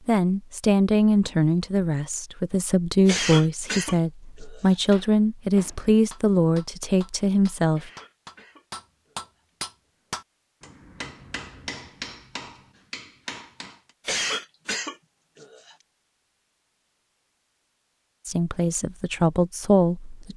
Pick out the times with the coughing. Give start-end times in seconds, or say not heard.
3.0-4.8, 7.7-9.5, 14.1-15.8.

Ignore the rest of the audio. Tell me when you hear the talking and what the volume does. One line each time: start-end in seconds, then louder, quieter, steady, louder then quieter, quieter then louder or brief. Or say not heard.
0.1-7.9 steady
18.2-20.3 brief.